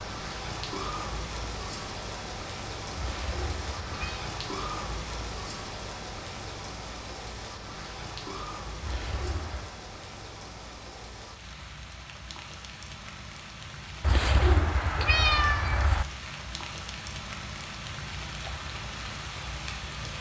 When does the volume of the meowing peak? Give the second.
15 s.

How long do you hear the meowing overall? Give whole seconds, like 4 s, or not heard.
4 s.